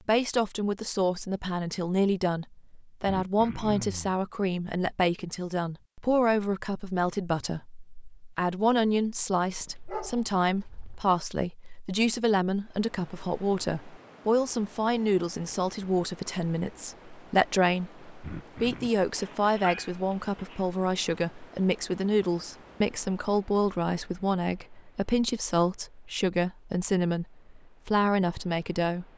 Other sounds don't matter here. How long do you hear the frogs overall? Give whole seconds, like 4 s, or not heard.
not heard.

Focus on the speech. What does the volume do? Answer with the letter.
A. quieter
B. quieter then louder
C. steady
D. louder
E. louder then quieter
C.